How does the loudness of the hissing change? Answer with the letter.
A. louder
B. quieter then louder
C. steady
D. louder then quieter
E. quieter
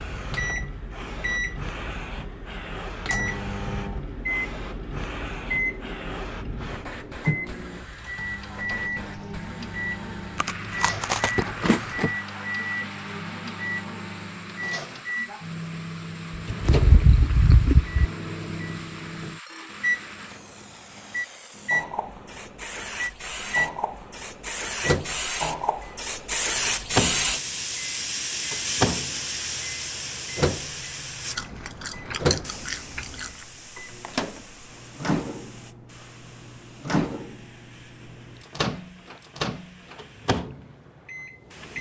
D.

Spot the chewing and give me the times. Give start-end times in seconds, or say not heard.
10.3-12.1, 16.4-18.1, 31.4-33.3.